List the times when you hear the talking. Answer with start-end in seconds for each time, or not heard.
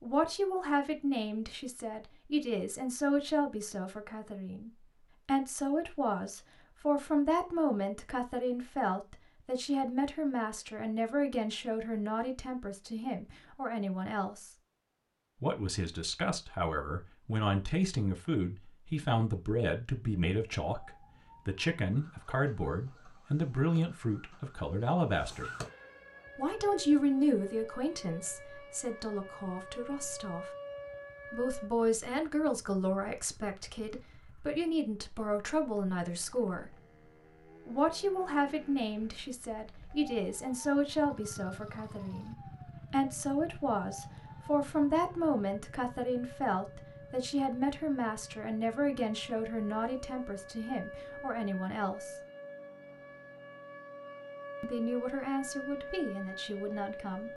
0.0-14.5, 15.4-25.5, 26.4-30.5, 31.3-36.8, 37.6-52.1, 54.6-57.3.